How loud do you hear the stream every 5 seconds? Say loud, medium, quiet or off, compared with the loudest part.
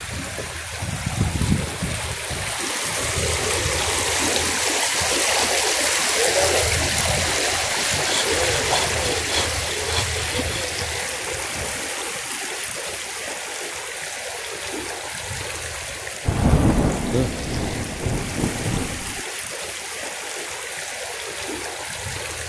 loud, loud, medium, medium, medium.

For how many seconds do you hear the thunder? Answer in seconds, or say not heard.
3 s.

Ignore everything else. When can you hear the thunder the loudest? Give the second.
17 s.